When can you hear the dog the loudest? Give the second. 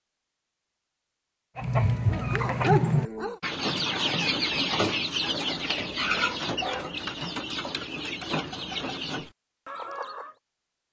3 s.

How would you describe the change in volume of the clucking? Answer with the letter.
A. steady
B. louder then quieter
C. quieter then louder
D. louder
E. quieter
E.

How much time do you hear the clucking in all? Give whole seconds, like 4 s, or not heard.
9 s.